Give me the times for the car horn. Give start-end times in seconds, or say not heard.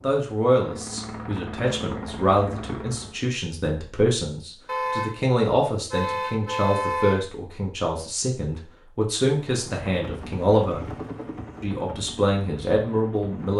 4.7-7.2.